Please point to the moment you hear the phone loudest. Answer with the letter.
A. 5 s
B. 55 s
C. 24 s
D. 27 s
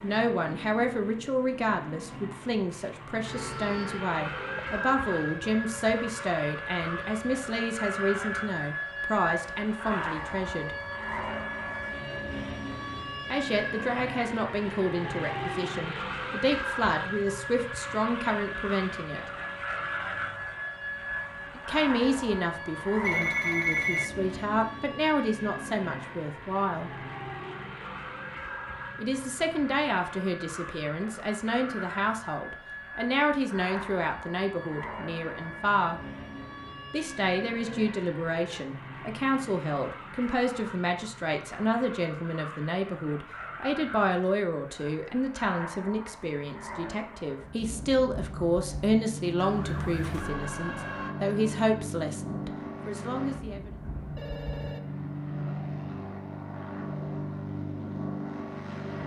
C.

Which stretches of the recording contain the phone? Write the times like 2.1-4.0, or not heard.
4.3-5.0, 23.0-24.1, 54.1-54.8.